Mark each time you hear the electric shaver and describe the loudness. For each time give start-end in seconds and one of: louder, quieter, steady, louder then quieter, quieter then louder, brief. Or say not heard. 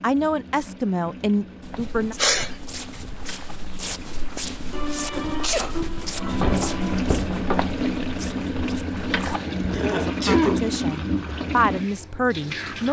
not heard.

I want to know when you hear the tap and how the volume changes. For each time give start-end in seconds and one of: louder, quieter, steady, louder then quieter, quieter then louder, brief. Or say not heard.
0.0-12.8 louder.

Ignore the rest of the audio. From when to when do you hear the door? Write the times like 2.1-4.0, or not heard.
6.0-7.7.